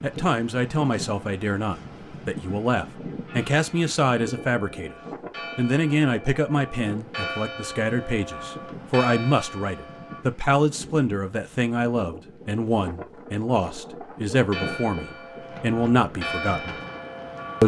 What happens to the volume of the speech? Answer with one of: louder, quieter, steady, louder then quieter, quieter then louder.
steady.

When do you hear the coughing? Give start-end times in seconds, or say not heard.
not heard.